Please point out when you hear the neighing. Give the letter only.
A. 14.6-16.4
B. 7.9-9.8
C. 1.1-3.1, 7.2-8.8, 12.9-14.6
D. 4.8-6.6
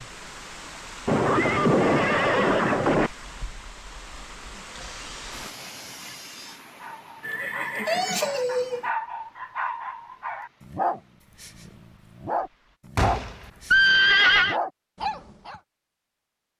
C.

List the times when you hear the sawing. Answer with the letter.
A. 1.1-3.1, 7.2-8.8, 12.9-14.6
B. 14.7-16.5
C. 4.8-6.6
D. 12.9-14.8
C.